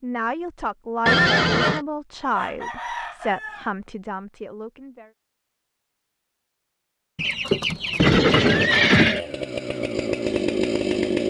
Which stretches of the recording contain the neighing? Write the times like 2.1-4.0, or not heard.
1.1-1.8, 8.0-9.2.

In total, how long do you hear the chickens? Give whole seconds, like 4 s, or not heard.
3 s.